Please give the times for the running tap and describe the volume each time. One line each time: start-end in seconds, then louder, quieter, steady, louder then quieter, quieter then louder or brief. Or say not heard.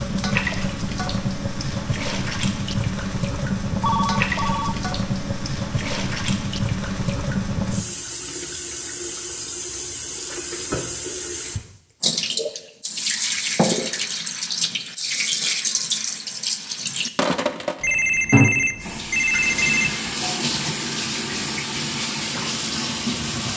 0.0-23.5 steady.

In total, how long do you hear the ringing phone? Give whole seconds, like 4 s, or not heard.
3 s.